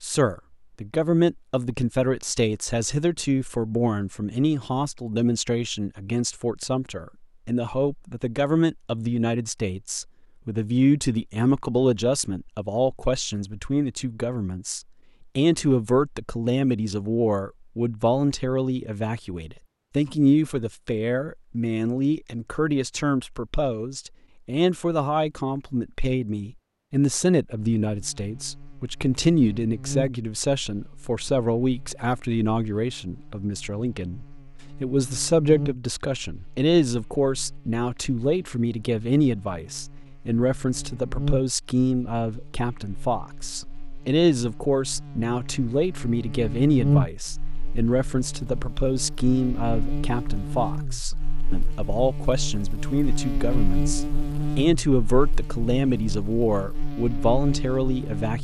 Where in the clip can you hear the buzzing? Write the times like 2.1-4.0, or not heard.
27.8-58.4.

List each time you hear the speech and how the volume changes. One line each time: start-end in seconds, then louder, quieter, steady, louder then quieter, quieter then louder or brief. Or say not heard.
0.0-58.4 steady.